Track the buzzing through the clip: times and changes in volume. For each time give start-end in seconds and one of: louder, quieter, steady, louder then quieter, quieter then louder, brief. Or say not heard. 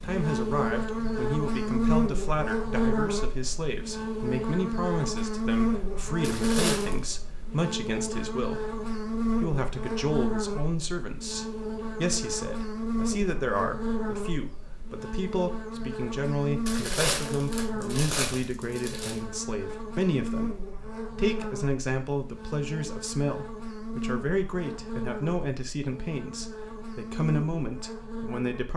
0.0-28.7 quieter.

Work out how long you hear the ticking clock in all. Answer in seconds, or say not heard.
not heard.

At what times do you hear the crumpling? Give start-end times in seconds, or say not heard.
6.2-7.0, 16.6-19.2.